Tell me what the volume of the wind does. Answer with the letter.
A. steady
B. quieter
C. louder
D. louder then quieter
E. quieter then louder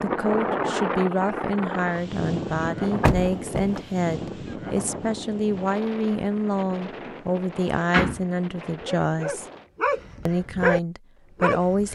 B.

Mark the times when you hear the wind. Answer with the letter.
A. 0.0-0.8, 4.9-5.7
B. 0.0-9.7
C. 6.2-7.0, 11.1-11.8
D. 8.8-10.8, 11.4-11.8
B.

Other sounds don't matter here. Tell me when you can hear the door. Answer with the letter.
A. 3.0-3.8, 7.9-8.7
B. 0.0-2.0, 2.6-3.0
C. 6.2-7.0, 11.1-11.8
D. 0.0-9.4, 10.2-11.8
A.